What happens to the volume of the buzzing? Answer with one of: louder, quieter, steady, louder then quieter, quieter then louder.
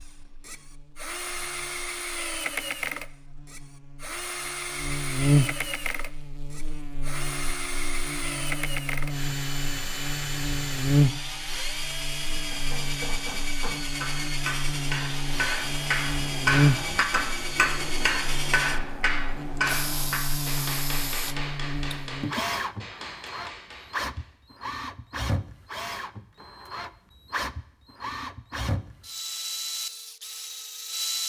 louder then quieter.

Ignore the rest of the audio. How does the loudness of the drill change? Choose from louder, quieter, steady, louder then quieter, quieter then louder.
steady.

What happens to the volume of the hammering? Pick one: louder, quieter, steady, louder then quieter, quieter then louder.
louder then quieter.